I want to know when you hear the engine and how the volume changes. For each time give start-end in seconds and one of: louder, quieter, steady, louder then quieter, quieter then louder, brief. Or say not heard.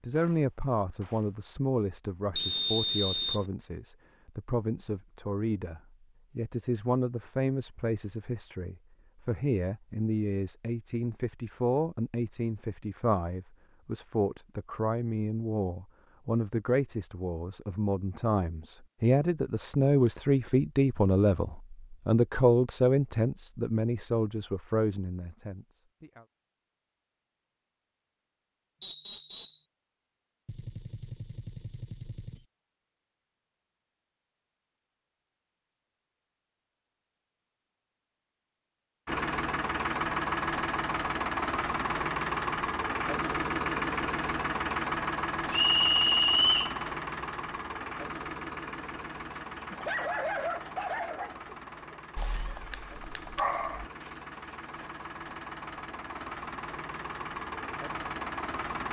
39.0-58.8 quieter then louder.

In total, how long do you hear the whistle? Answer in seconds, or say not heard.
3 s.